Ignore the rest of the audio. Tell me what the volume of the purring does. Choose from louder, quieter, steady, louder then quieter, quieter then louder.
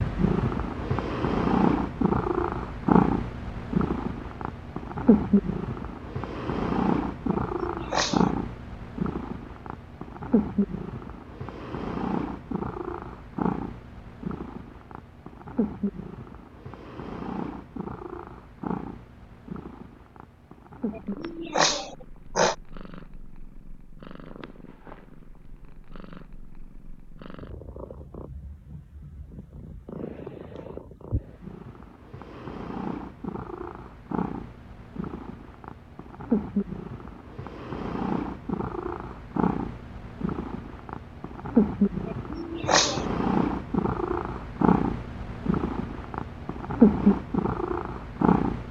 quieter then louder.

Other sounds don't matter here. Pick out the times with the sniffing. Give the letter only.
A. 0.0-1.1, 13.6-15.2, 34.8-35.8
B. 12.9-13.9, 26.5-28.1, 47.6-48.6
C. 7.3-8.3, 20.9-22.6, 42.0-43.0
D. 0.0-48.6
C.